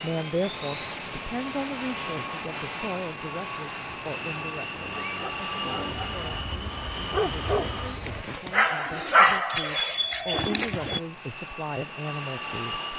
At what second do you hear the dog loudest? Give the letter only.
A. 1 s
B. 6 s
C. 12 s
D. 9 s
D.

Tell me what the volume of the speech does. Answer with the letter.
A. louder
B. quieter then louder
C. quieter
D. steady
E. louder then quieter
B.